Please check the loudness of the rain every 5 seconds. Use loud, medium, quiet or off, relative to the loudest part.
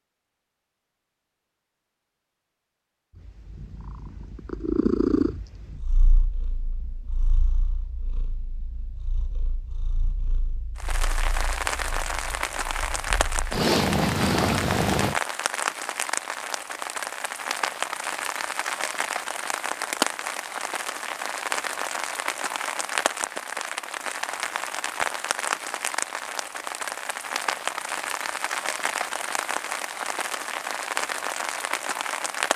off, off, loud, loud, loud, loud, loud.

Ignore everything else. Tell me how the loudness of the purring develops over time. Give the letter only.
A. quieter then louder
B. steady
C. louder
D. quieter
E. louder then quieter
A.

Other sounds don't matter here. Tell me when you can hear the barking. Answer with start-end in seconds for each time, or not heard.
not heard.